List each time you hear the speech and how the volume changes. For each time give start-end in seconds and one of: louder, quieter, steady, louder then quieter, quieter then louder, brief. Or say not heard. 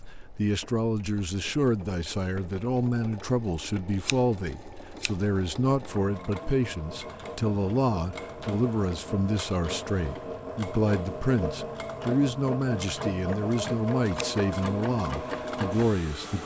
0.1-16.4 steady.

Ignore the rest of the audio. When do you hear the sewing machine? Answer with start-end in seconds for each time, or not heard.
0.0-16.4.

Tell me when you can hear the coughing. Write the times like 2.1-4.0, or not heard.
not heard.